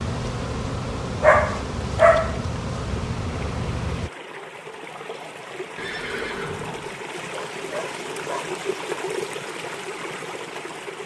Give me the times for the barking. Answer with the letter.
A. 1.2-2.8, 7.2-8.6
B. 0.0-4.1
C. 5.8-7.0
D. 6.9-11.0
A.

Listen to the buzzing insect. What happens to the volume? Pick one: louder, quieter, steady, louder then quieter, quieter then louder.
steady.